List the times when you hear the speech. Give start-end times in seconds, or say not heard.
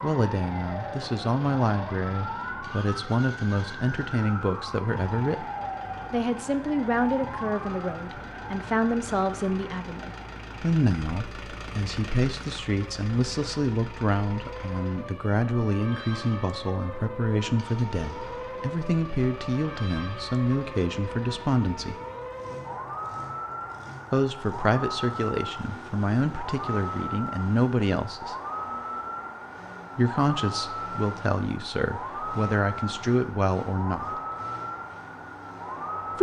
0.0-5.5, 6.1-21.9, 24.1-28.4, 29.9-34.2.